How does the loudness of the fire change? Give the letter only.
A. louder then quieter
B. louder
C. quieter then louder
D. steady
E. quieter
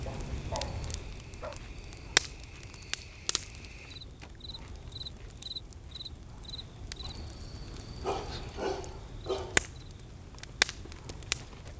C.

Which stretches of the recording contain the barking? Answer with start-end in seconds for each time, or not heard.
0.1-1.6, 8.0-9.7.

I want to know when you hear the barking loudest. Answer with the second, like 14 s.
9 s.